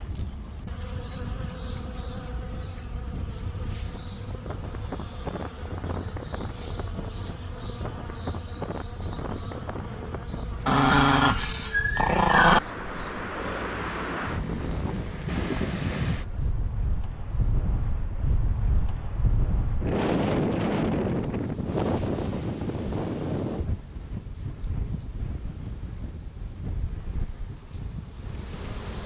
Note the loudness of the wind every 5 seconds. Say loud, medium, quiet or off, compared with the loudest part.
quiet, medium, medium, loud, loud, quiet.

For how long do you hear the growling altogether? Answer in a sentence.
The growling can be heard for 2 seconds in total.